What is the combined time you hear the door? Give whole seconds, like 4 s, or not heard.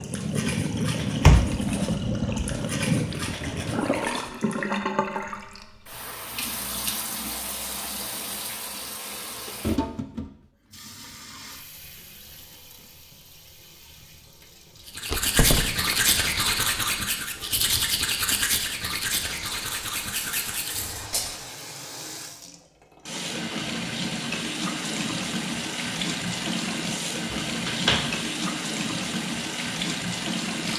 3 s.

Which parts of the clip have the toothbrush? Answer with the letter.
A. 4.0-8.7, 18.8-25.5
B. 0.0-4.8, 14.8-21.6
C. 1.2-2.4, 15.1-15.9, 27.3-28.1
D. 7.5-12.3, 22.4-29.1
B.